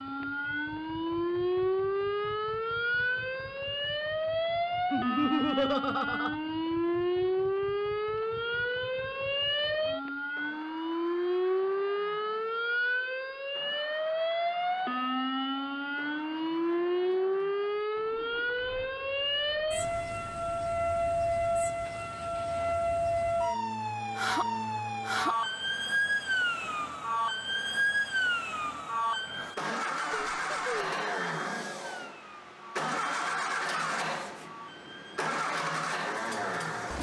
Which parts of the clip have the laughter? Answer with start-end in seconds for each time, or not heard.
4.9-6.3, 30.1-30.9.